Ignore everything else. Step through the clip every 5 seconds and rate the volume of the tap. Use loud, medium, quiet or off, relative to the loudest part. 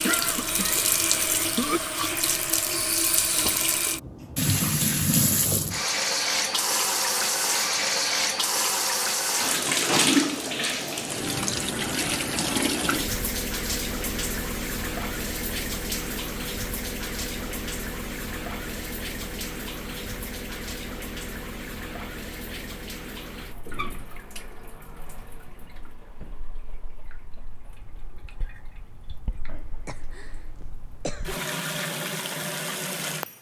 loud, loud, loud, medium, quiet, quiet, medium.